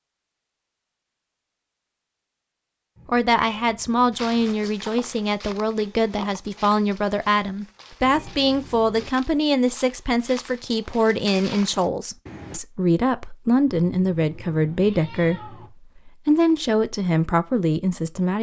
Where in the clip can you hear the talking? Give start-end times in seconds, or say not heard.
3.0-18.3.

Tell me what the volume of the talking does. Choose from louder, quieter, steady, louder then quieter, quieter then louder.
steady.